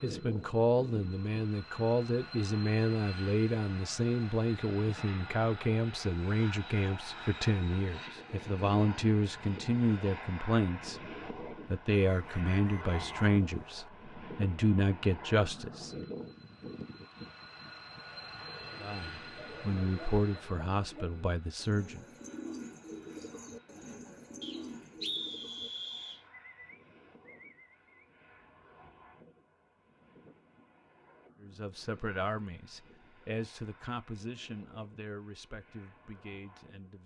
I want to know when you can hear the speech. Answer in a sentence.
You can hear the speech from 0.0 to 15.9 s, from 18.8 to 22.1 s and from 31.4 to 37.0 s.